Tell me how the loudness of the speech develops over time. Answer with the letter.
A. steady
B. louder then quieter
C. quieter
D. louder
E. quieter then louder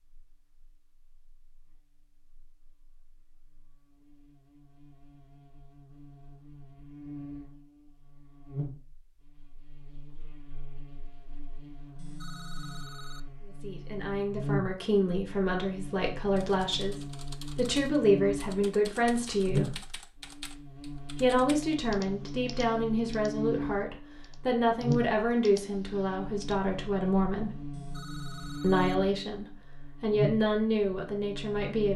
A.